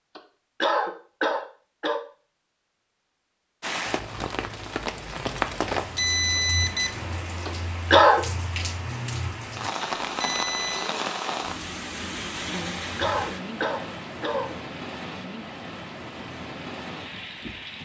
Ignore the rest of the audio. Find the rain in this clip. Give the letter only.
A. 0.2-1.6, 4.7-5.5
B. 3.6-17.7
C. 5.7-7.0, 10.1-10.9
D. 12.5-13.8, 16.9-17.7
B.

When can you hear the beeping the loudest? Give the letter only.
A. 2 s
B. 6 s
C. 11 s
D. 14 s
B.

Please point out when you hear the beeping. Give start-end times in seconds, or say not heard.
5.7-7.0, 10.1-10.9.